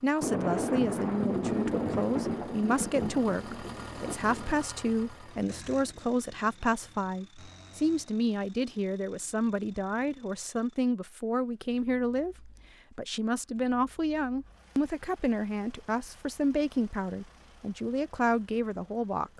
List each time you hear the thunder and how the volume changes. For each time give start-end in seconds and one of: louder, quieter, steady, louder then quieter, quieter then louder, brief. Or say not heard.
0.2-4.7 quieter.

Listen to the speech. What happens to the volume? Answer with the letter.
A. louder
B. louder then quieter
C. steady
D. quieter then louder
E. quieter
C.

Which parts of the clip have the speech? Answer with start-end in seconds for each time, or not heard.
0.0-19.3.